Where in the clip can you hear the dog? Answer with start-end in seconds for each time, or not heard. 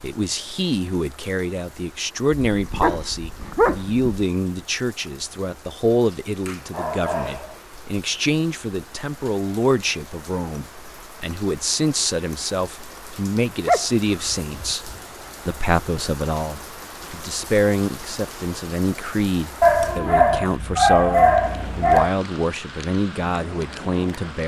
2.5-4.1, 6.3-7.6, 13.7-14.8, 19.6-22.1.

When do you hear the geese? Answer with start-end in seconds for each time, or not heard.
not heard.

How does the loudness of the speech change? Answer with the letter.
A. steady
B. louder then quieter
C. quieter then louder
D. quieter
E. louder
A.